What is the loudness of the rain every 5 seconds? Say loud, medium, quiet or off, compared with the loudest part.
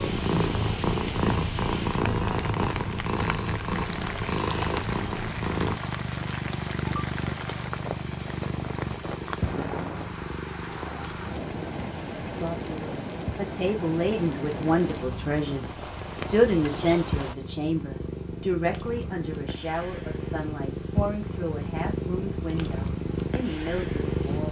loud, loud, loud, loud, off.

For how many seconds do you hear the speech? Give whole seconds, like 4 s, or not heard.
12 s.